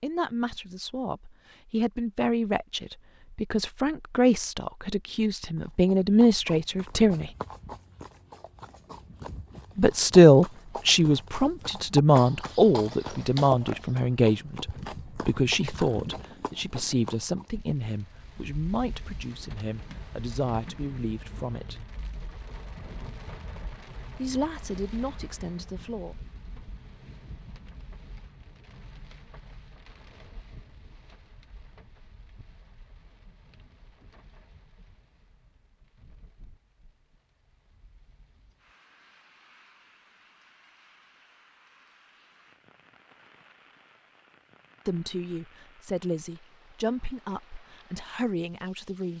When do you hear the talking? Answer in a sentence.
You can hear the talking from 0.0 to 7.3 s, from 9.8 to 21.8 s, from 24.1 to 26.1 s and from 44.9 to 49.1 s.